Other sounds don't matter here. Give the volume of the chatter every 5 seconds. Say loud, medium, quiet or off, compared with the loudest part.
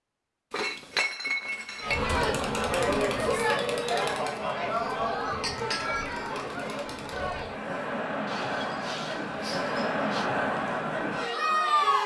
loud, medium, loud.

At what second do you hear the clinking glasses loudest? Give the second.
1 s.